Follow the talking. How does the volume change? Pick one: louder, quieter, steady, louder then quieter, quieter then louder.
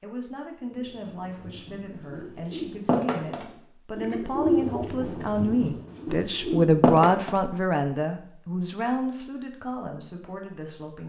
louder then quieter.